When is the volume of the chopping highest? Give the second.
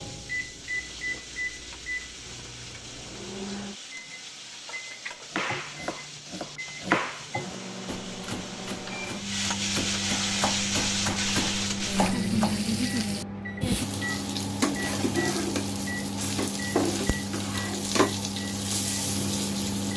7 s.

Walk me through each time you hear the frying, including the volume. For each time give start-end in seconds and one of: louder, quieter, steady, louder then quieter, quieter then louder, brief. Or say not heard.
0.0-19.9 louder.